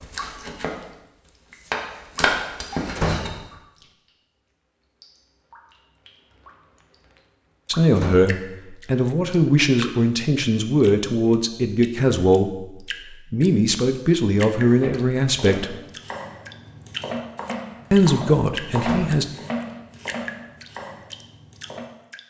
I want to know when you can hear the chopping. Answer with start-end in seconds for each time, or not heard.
0.0-3.3, 14.6-21.9.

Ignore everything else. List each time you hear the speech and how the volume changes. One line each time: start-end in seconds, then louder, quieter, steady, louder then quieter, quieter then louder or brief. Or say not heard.
7.7-12.7 steady
13.3-15.8 brief
17.9-19.2 brief.